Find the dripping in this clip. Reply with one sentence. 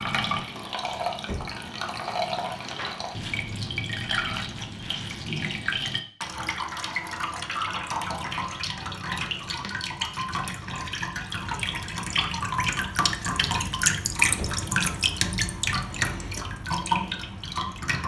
The dripping can be heard from 0.0 to 18.0 s.